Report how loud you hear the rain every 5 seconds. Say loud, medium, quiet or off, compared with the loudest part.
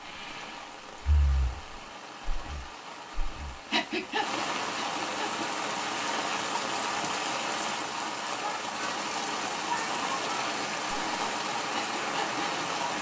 medium, loud, loud.